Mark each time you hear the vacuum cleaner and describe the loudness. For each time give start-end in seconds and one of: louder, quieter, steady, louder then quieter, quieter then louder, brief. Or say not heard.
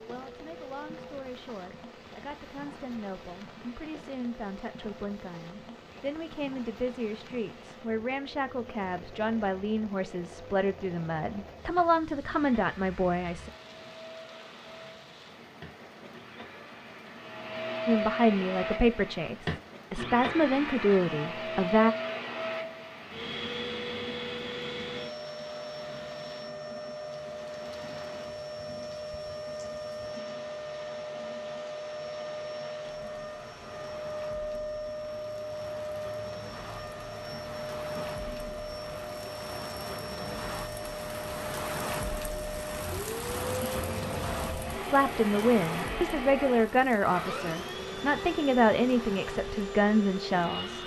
0.0-50.8 louder.